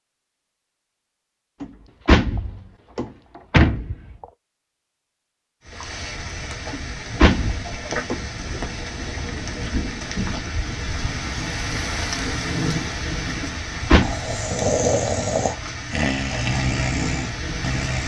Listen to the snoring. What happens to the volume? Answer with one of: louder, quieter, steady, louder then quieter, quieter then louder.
quieter.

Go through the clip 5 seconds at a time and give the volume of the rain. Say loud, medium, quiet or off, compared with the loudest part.
off, loud, loud, loud.